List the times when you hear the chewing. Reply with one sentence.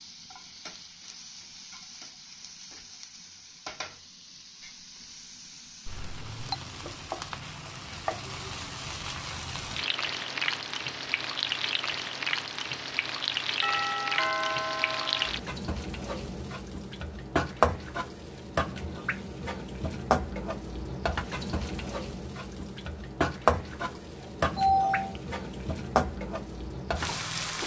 You can't hear the chewing here.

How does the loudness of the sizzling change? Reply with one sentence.
The loudness of the sizzling goes up.